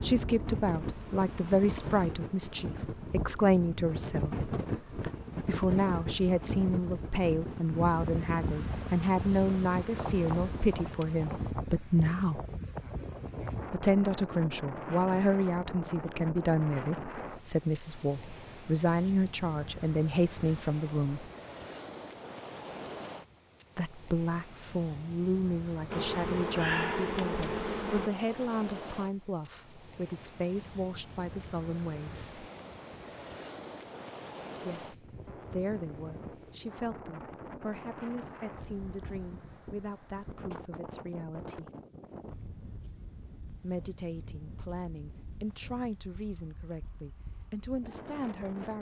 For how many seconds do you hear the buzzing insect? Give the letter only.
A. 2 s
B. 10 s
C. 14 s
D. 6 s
C.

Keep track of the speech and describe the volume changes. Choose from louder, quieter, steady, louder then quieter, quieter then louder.
quieter.